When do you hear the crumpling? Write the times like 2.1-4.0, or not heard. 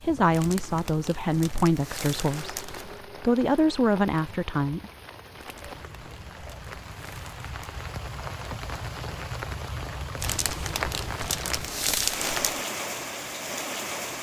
0.3-3.0, 5.3-7.7, 10.2-12.6.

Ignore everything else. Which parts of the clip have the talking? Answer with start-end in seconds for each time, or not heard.
0.0-4.9.